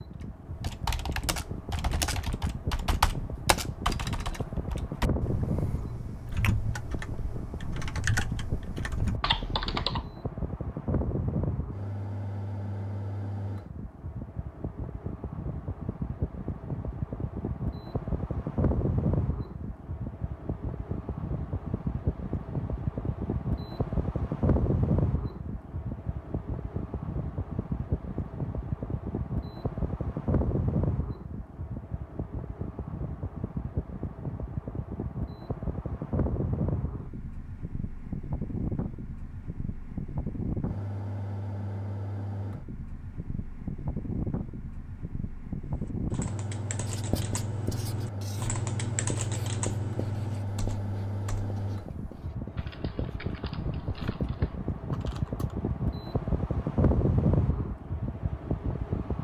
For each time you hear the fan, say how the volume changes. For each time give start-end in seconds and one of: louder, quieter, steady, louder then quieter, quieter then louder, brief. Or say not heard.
0.0-59.2 steady.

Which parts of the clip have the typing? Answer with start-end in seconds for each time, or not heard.
0.1-10.2, 45.6-55.6.